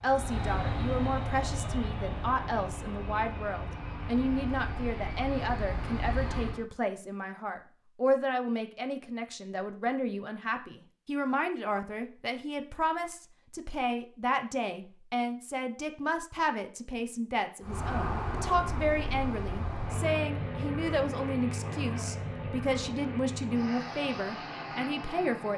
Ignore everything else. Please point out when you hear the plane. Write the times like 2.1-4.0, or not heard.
0.0-6.7, 17.6-25.5.